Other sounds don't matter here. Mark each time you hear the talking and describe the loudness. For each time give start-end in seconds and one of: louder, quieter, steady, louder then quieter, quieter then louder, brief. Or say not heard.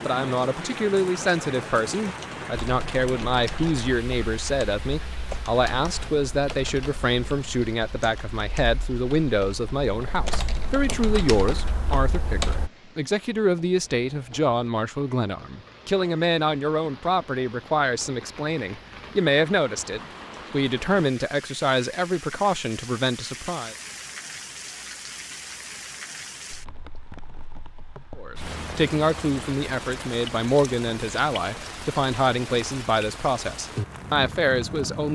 0.0-23.8 steady
28.1-35.1 steady.